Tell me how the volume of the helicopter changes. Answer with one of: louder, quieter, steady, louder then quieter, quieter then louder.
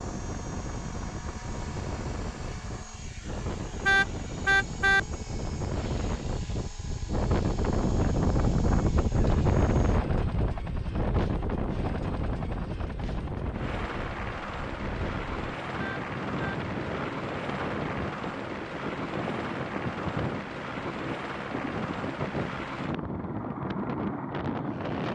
louder.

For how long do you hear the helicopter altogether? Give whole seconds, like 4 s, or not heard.
25 s.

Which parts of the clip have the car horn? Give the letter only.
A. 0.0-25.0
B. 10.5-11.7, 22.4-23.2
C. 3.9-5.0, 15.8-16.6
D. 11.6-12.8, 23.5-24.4
C.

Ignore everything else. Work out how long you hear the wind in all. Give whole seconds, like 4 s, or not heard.
25 s.